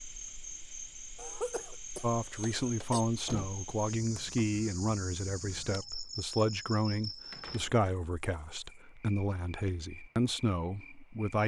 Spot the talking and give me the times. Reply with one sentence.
You can hear the talking from 2.0 to 11.4 s.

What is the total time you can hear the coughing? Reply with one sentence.
You can hear the coughing for 2 seconds altogether.